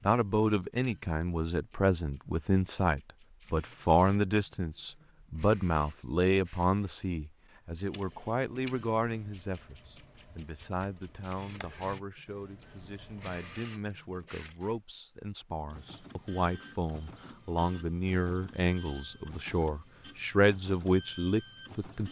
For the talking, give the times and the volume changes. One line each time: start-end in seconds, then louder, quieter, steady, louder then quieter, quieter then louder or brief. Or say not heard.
0.1-22.0 quieter then louder.